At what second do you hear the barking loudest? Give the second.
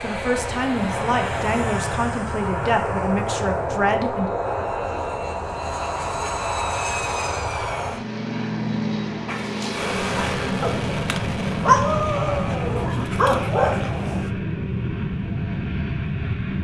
12 s.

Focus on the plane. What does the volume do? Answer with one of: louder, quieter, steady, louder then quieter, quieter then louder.
steady.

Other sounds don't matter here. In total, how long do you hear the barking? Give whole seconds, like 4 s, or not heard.
5 s.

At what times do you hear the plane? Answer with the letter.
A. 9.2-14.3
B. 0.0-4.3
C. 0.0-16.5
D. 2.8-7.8
C.